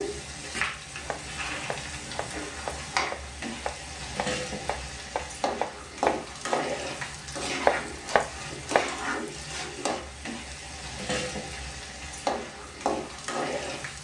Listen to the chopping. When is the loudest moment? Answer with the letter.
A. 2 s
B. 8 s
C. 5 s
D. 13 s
B.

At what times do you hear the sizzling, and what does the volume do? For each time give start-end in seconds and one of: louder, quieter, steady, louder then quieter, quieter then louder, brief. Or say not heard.
0.0-13.9 steady.